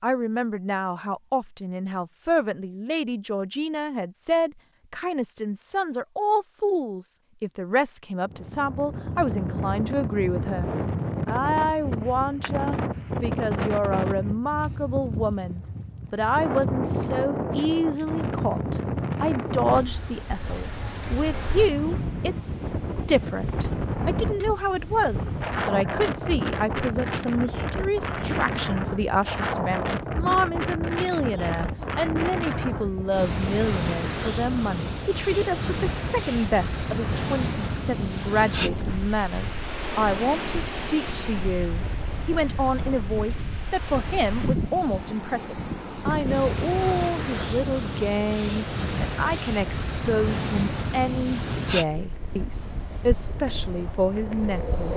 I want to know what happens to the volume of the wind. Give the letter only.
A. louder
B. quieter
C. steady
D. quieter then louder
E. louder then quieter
C.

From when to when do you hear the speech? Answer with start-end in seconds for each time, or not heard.
0.0-54.9.